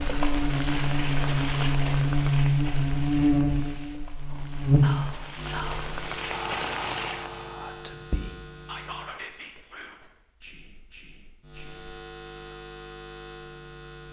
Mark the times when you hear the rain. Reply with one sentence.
The rain can be heard from 0.0 to 7.5 s.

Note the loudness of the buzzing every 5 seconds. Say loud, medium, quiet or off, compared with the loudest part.
loud, quiet, quiet.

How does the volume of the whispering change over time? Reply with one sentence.
The loudness of the whispering goes down.